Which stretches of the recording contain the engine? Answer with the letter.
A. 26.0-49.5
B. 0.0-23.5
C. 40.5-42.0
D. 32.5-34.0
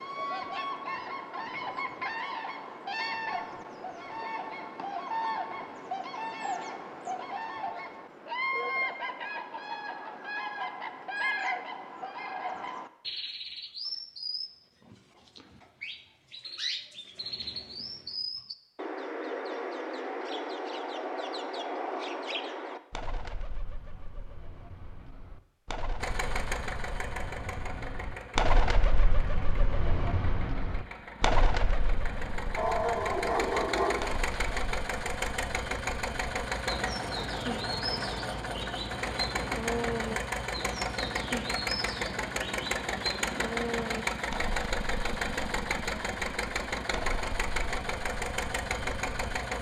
A.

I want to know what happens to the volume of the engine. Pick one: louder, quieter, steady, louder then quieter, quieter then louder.
louder.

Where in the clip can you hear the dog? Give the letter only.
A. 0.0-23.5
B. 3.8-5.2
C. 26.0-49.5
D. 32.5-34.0
D.